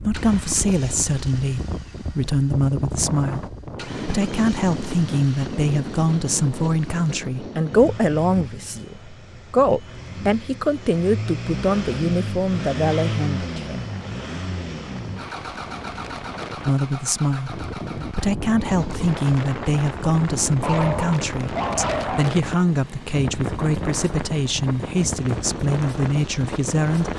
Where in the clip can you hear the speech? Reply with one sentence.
You can hear the speech from 0.0 to 13.8 s and from 16.6 to 27.1 s.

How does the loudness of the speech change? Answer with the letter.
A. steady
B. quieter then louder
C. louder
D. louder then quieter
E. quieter
A.